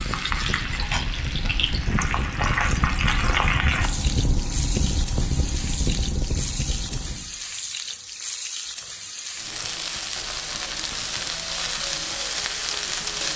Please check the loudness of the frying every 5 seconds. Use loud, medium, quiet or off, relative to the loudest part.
loud, medium, loud.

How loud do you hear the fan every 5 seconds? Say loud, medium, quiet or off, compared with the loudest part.
loud, loud, off.